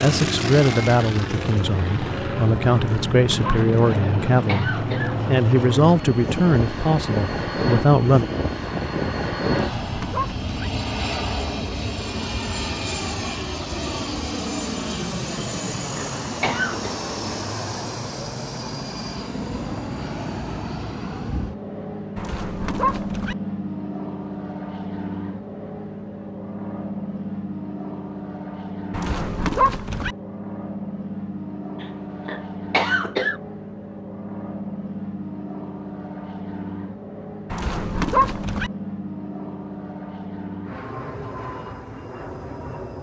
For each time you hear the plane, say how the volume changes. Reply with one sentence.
You can hear the plane from 0.0 to 42.9 s, getting quieter.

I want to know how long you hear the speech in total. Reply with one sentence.
The speech can be heard for 8 seconds in total.